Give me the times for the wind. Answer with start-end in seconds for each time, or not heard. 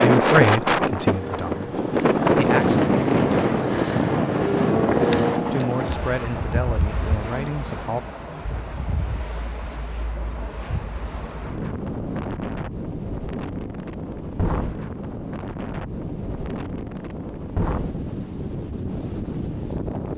0.0-20.1.